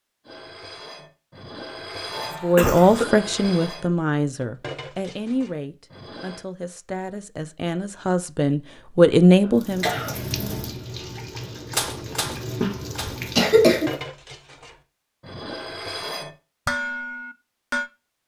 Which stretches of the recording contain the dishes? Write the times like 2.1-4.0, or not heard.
0.2-6.5, 11.7-17.9.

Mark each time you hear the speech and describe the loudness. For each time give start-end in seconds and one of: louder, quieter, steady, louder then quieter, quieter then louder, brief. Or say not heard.
2.4-9.8 quieter then louder.